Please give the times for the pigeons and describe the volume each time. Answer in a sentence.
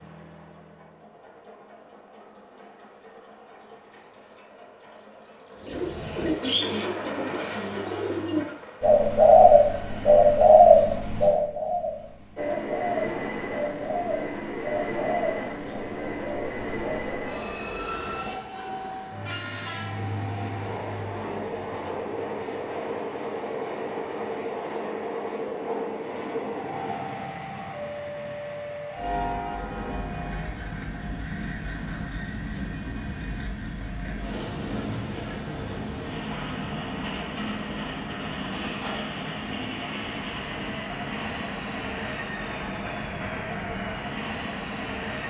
The pigeons can be heard from 5.7 to 17.4 s, getting louder then quieter.